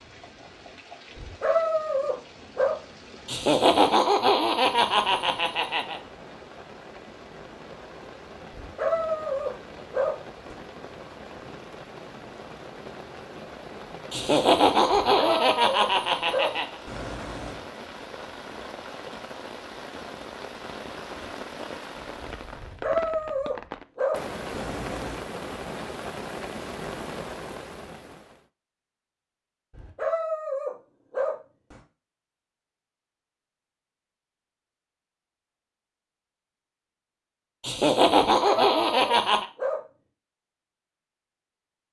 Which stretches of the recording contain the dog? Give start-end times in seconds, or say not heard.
1.1-2.8, 8.5-10.6, 15.0-17.6, 22.6-25.2, 29.7-31.8, 38.4-39.8.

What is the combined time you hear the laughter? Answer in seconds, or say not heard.
7 s.